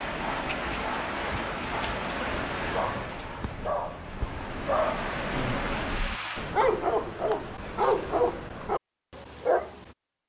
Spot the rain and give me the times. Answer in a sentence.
The rain can be heard from 0.0 to 6.5 s.